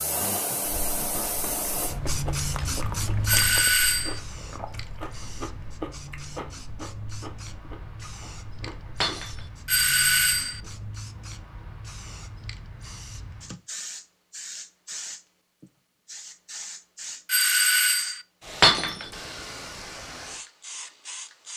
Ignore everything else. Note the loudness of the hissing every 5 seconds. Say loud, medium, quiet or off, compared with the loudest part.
loud, medium, medium, medium, medium.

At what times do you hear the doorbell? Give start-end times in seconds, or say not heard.
3.2-4.2, 9.7-10.6, 17.2-18.2.